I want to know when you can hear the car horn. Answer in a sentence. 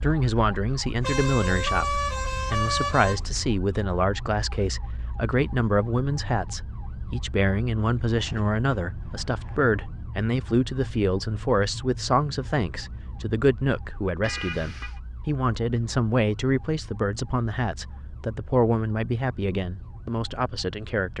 You can hear the car horn from 1.0 to 3.4 s, from 8.2 to 9.6 s and from 14.2 to 15.0 s.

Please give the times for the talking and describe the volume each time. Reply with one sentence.
The talking can be heard from 0.0 to 21.1 s, at a steady volume.